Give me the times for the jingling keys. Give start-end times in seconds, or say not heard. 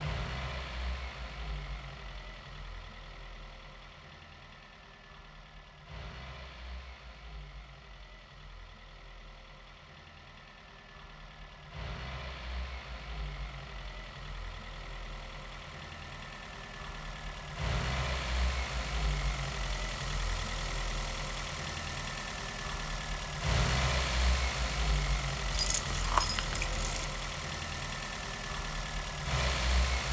25.5-27.1.